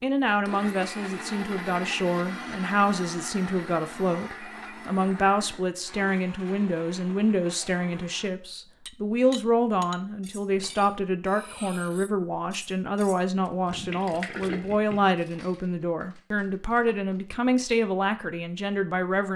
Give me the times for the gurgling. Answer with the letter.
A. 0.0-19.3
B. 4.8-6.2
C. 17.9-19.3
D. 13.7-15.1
D.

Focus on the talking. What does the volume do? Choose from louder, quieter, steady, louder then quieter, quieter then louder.
steady.